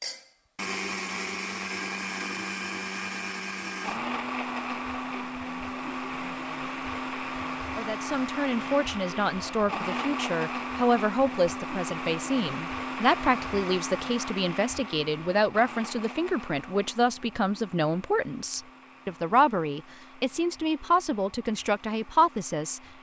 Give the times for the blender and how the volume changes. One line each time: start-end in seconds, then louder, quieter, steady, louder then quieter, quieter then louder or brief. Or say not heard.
0.0-22.9 quieter.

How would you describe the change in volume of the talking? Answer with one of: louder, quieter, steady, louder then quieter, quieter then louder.
steady.